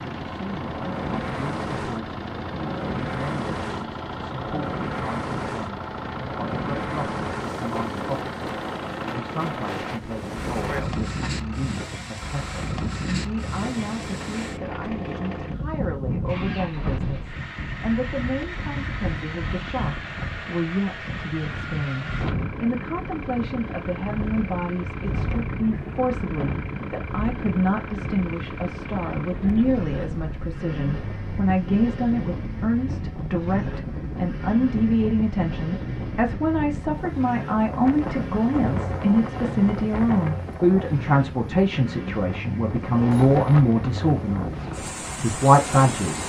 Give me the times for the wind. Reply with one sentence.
The wind can be heard from 0.0 to 46.2 s.